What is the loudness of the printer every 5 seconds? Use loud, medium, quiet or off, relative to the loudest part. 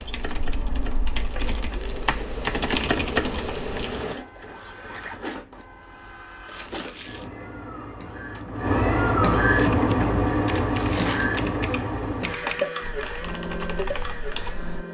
quiet, loud, loud.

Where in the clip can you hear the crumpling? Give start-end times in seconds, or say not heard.
1.2-2.1, 6.5-7.3, 10.6-11.3.